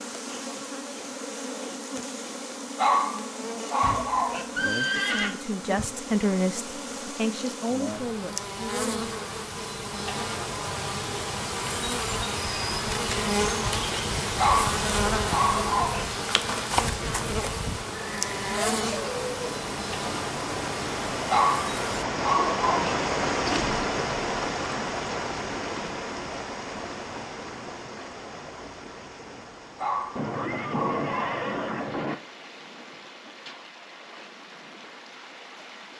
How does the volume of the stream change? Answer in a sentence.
The volume of the stream goes up, then down.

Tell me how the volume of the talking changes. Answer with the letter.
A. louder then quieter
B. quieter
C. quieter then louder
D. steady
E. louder
A.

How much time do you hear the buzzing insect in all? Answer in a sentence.
The buzzing insect can be heard for 22 seconds in total.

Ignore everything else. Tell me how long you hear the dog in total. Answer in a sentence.
The dog can be heard for 7 seconds in total.